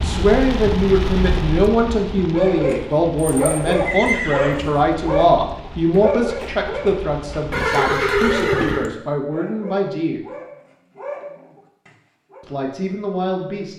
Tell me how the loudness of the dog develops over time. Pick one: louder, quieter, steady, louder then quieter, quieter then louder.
quieter.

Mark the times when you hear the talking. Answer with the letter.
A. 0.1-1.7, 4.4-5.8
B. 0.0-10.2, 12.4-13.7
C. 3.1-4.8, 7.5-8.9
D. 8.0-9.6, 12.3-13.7
B.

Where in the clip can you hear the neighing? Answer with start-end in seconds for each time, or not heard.
3.1-4.8, 7.5-8.9.